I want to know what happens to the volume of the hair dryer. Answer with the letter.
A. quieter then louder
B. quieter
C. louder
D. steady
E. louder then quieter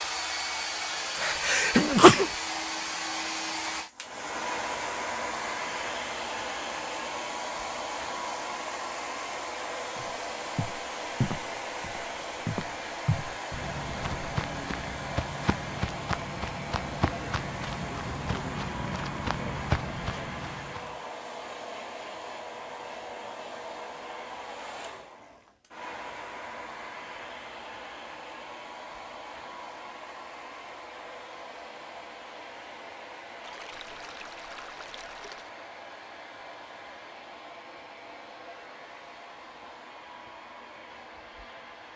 B.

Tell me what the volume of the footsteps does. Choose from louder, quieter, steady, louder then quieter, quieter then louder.
steady.